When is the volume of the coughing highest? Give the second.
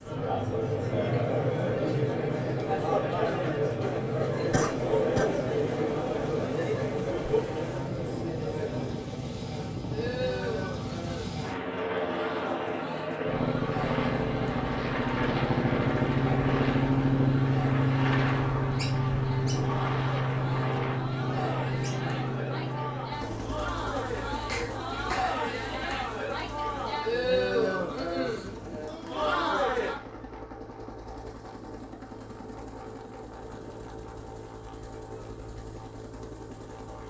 5 s.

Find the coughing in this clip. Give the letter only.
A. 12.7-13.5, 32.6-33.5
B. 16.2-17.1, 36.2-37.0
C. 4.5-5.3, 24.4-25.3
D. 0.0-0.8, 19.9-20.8
C.